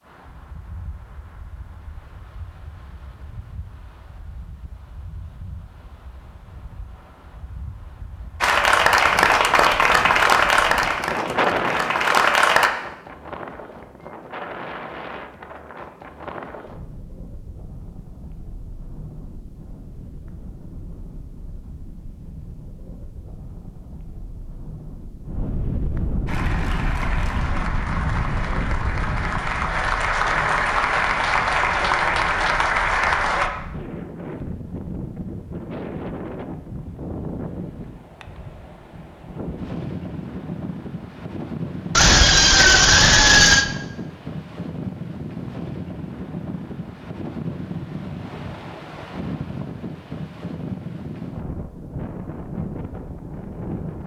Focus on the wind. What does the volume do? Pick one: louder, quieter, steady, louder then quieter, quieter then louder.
louder.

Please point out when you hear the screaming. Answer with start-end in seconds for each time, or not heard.
42.0-43.6.